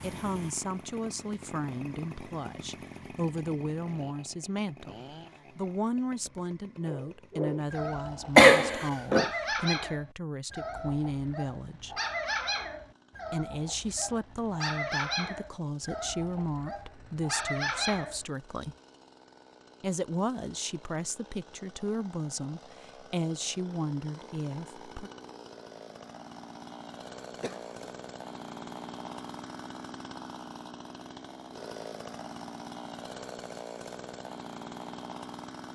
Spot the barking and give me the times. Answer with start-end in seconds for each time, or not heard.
6.8-18.2.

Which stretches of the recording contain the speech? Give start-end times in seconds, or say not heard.
0.0-12.0, 13.3-18.8, 19.8-25.1.